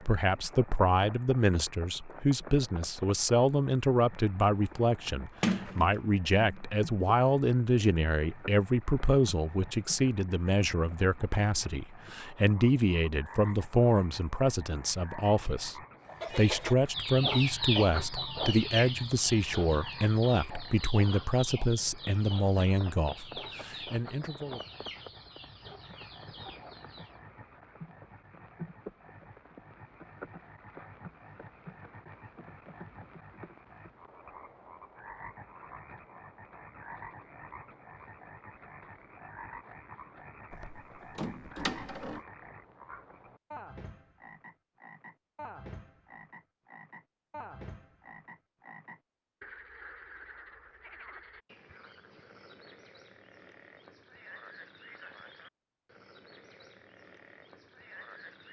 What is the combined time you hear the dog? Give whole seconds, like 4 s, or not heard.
not heard.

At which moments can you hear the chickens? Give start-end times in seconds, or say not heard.
16.1-27.1.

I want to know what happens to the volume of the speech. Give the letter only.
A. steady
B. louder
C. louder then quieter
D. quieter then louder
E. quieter
A.